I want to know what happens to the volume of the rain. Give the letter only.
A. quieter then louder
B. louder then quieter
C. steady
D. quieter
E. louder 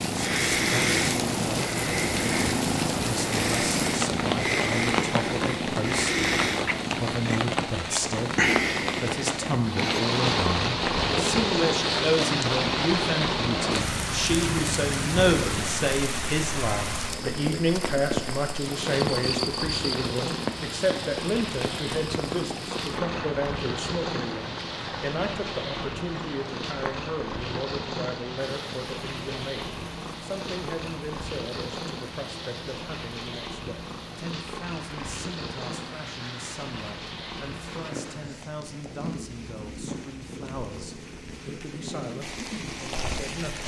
D.